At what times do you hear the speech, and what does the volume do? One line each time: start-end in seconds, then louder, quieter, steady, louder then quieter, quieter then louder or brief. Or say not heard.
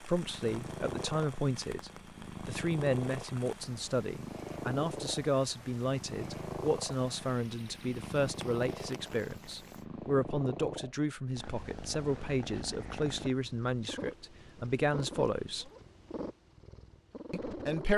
0.0-15.7 steady
17.3-17.9 brief.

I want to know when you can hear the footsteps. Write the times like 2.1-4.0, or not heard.
not heard.